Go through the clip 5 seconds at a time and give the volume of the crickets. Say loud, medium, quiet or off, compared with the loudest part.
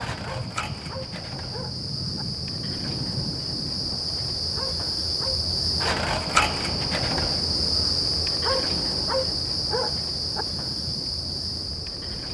medium, loud, medium.